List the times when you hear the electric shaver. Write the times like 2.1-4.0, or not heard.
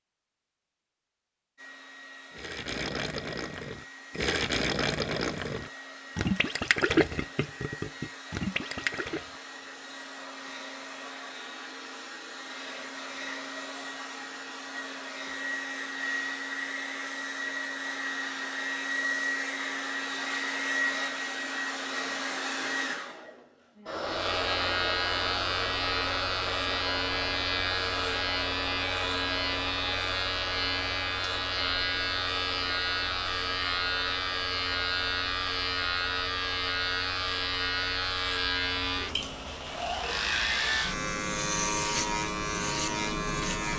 24.0-43.7.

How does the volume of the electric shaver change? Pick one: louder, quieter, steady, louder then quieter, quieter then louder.
steady.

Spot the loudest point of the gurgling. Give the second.
7 s.